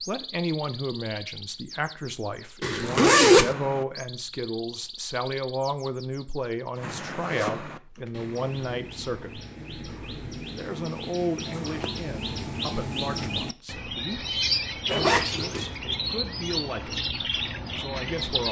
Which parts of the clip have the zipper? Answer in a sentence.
You can hear the zipper from 2.6 to 3.5 s, from 6.8 to 8.1 s and from 14.8 to 15.8 s.